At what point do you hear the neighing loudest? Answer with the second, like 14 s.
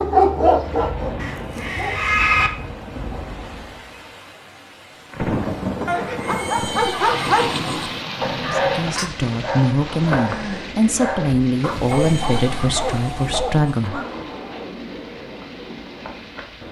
2 s.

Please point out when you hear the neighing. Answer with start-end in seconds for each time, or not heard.
1.1-2.5, 5.8-7.9, 11.8-13.9.